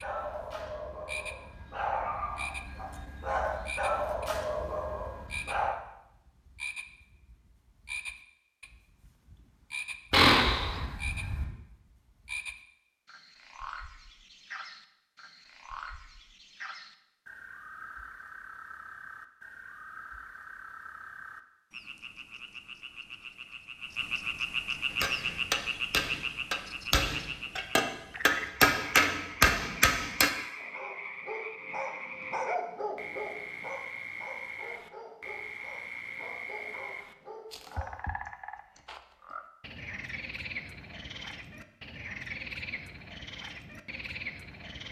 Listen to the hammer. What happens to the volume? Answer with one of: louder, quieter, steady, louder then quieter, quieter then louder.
louder.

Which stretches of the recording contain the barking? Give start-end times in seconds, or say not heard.
0.0-5.8, 30.6-38.0.